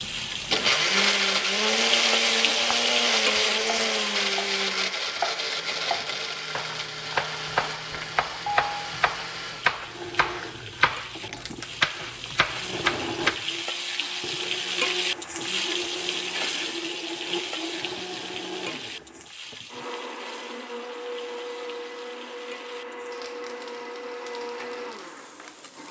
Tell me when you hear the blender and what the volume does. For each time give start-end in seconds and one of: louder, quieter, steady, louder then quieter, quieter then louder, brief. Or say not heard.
0.0-25.8 quieter.